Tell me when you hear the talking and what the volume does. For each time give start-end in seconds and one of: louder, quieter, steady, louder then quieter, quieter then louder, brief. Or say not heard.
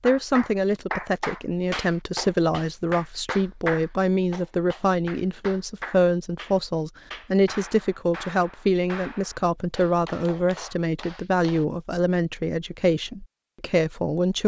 0.0-14.4 steady.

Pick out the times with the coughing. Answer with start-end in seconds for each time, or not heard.
not heard.